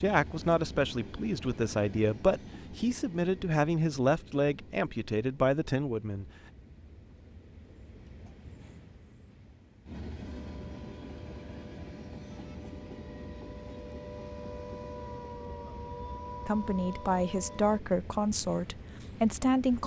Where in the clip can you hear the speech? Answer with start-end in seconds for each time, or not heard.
0.0-6.2, 16.4-19.8.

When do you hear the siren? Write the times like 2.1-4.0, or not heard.
10.2-17.8.